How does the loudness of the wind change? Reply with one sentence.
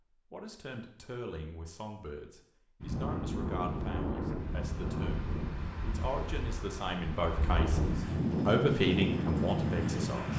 The volume of the wind goes down, then up.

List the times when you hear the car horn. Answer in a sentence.
The car horn can't be heard in this clip.